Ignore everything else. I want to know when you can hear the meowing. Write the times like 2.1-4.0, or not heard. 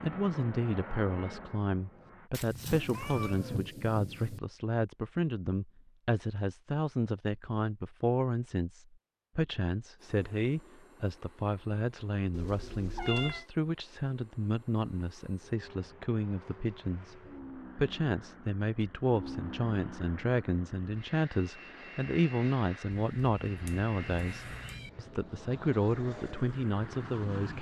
2.3-3.6, 12.3-13.4, 22.9-24.9.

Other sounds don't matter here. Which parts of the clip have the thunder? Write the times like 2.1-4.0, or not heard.
2.5-4.4.